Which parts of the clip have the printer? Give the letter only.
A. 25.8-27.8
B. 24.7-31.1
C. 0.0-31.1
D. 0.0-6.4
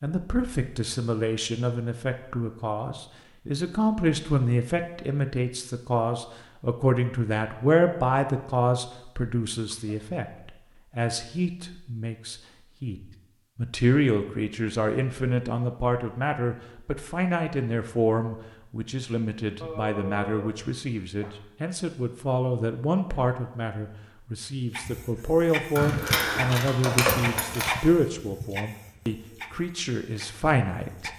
B.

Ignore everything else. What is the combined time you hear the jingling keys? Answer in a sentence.
The jingling keys can be heard for 2 seconds in total.